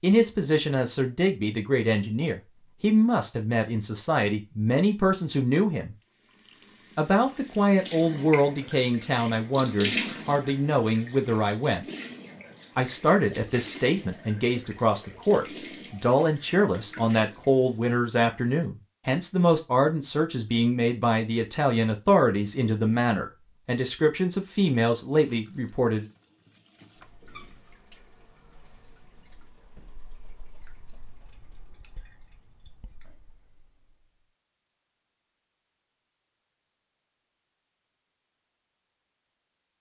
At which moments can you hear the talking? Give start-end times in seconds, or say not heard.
0.0-6.0, 7.0-11.8, 12.8-26.1.